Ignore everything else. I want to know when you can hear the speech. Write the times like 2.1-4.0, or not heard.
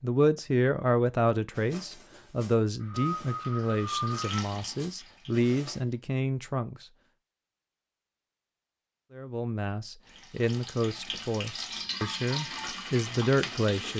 0.0-6.8, 9.2-13.9.